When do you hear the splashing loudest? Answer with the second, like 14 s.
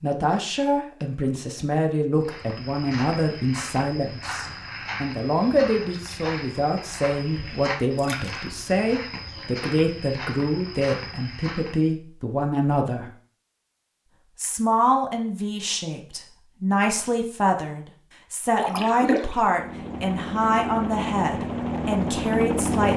19 s.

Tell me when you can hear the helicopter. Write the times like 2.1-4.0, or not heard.
19.4-22.9.